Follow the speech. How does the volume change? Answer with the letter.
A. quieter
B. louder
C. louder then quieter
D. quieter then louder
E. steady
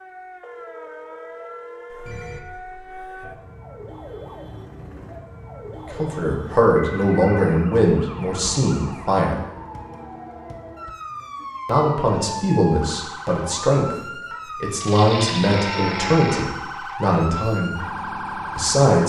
E.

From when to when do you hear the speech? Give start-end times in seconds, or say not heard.
5.9-9.4, 11.7-19.0.